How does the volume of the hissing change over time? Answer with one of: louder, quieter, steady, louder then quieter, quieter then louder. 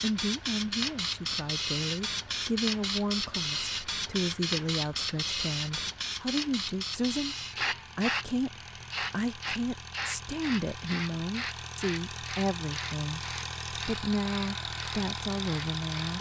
quieter.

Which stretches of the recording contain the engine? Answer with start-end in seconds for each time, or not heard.
0.2-16.1.